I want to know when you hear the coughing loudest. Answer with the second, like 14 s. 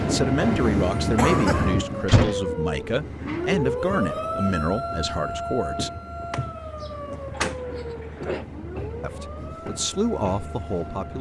1 s.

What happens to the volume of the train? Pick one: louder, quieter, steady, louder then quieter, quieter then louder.
quieter.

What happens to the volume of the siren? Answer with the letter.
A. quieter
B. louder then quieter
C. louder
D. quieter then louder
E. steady
A.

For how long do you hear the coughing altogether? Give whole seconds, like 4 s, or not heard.
2 s.